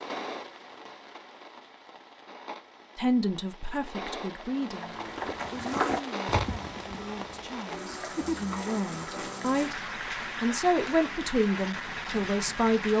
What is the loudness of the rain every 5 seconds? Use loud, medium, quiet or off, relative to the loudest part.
medium, loud, loud.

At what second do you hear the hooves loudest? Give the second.
6 s.